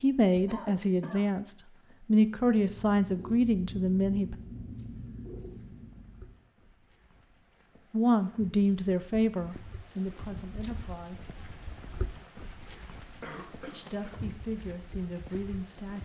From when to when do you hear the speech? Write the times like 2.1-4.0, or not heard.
0.0-4.3, 7.9-11.2, 13.7-16.0.